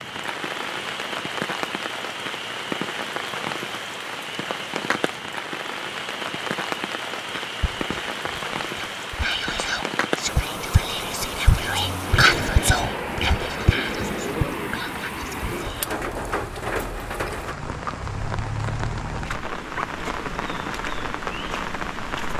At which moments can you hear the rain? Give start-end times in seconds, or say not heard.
0.0-22.3.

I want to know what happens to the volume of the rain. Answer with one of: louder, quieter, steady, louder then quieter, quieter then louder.
steady.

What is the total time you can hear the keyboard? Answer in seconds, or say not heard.
not heard.